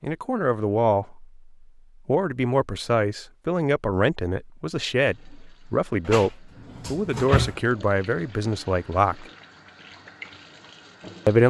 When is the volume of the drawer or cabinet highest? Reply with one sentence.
The volume of the drawer or cabinet peaks at 7 seconds.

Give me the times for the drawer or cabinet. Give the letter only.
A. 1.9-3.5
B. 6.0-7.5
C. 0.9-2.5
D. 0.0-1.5
B.